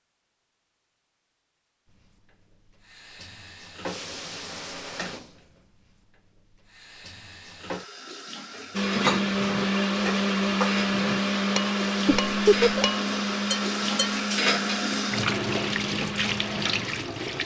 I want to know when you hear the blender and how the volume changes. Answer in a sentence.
The blender can be heard from 8.7 to 17.4 s, getting quieter.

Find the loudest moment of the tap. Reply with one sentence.
The volume of the tap peaks at 15 seconds.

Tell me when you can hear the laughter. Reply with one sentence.
The laughter can be heard from 12.1 to 12.8 s.